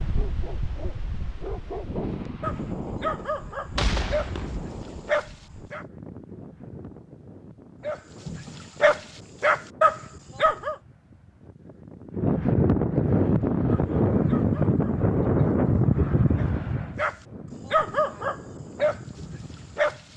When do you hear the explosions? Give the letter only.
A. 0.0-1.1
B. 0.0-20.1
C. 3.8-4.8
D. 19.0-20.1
C.